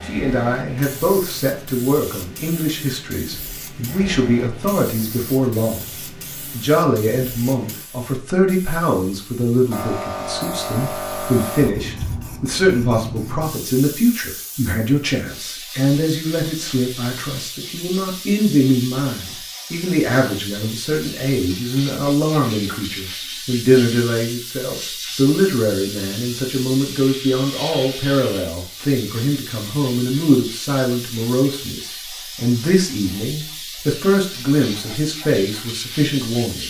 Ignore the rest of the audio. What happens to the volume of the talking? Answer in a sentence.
The loudness of the talking stays about the same.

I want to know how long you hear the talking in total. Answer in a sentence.
The talking can be heard for 36 seconds in total.